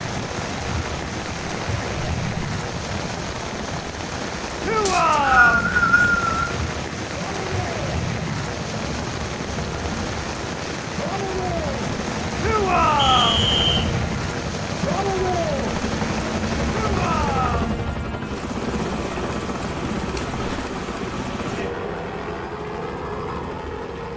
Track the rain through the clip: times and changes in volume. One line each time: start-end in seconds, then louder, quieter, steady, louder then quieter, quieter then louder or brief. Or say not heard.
0.0-17.6 steady.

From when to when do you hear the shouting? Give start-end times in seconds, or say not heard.
4.6-5.7, 12.4-13.4, 16.7-17.8.